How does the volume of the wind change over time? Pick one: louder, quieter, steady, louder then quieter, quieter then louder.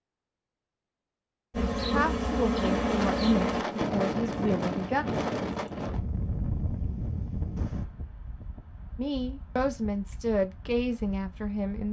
quieter.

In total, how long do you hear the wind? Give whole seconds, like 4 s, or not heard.
9 s.